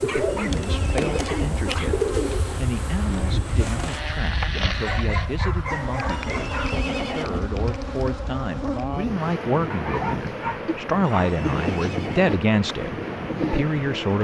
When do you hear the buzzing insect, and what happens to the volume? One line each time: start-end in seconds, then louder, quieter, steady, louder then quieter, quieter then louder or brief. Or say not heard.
0.0-14.2 steady.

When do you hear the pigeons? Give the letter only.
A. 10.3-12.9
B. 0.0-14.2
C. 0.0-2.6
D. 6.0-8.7
C.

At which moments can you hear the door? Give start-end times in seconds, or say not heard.
not heard.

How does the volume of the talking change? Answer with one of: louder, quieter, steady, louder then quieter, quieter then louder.
louder.